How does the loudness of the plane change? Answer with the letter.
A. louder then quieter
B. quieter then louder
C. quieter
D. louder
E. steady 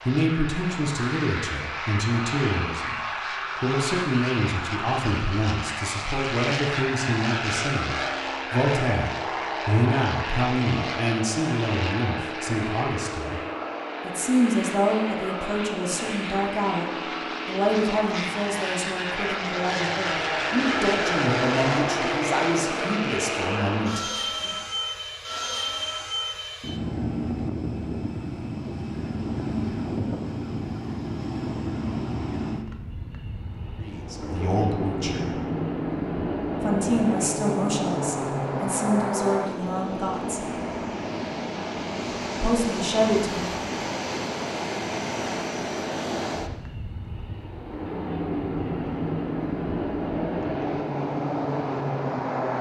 E.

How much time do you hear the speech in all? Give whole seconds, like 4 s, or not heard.
31 s.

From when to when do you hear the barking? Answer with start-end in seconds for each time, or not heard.
not heard.